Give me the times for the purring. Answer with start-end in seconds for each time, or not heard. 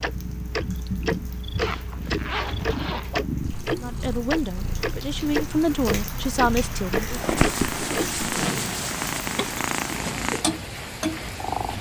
0.0-11.7.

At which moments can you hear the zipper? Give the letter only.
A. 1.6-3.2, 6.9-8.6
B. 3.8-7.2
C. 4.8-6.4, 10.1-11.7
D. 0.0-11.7
A.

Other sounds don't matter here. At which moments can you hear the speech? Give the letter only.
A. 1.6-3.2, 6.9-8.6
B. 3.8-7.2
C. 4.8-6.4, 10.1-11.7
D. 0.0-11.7
B.